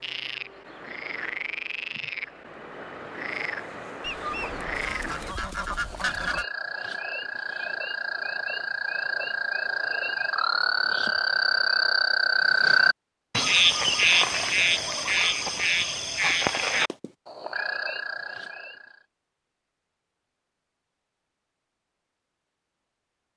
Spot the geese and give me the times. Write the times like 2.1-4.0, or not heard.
4.0-6.5.